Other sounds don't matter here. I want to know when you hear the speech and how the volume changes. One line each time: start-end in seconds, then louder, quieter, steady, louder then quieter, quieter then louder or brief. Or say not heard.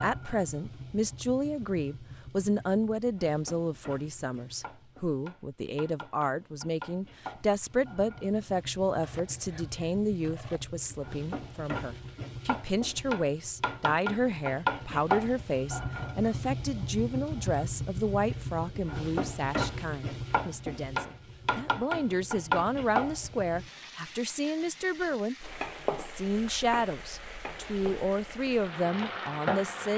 0.0-29.9 steady.